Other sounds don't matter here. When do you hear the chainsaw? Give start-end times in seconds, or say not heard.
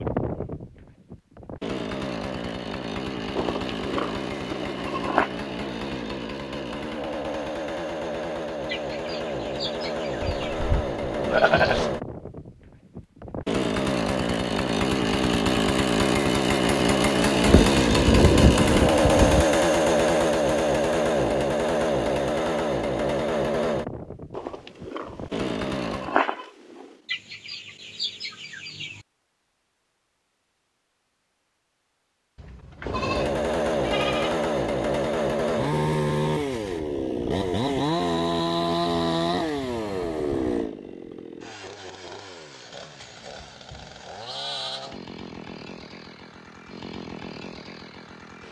0.0-26.2, 32.9-48.4.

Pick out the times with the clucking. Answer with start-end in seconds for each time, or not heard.
8.7-10.7, 27.1-29.1.